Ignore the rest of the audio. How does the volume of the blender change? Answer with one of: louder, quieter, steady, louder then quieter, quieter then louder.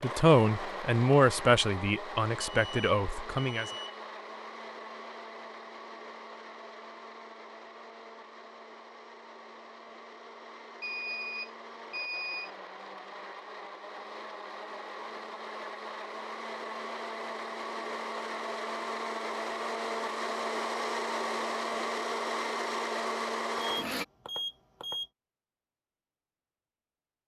quieter then louder.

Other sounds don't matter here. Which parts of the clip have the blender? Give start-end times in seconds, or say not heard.
0.0-24.1.